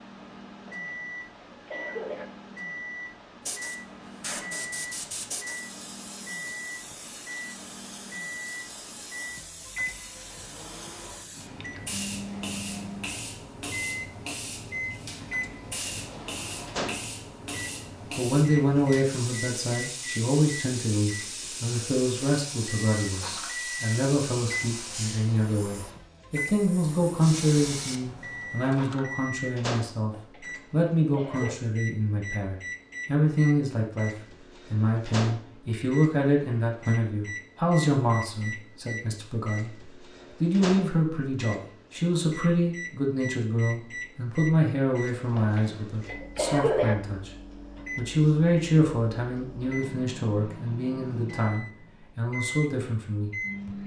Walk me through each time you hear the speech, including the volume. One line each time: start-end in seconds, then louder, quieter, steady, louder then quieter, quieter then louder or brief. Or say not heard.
18.1-47.3 steady
48.0-53.8 quieter.